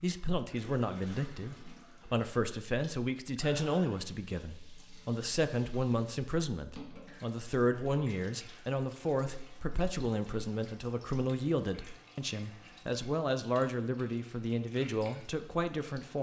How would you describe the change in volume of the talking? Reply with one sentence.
The loudness of the talking stays about the same.